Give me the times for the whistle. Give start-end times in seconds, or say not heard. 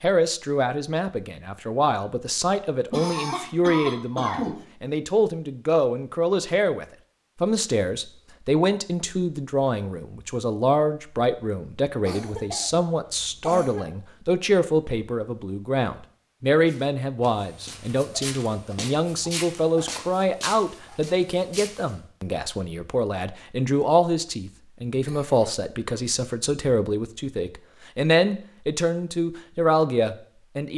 not heard.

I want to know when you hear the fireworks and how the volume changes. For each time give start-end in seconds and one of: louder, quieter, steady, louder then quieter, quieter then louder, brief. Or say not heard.
not heard.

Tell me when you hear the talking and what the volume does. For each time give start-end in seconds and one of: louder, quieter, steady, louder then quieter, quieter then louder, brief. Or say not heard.
0.0-30.7 steady.